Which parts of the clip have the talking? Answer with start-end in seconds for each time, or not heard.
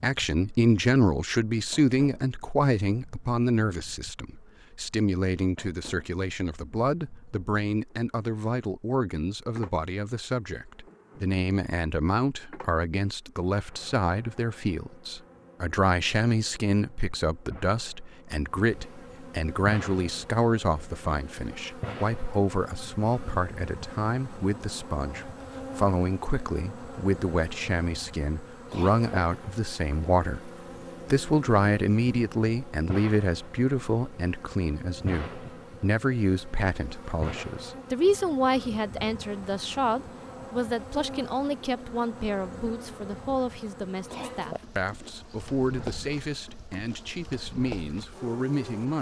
0.0-30.5, 31.1-48.9.